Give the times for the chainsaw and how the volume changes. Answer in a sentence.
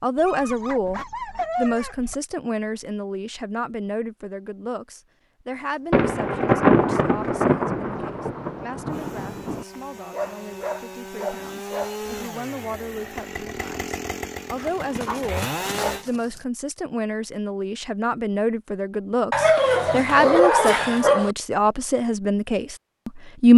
You can hear the chainsaw from 8.8 to 16.1 s, getting louder.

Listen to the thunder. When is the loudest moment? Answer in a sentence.
The loudest moment of the thunder is at 7 seconds.